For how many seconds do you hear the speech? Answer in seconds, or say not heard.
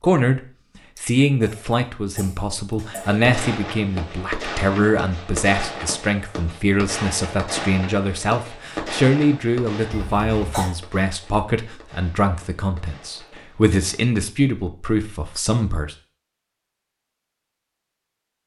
15 s.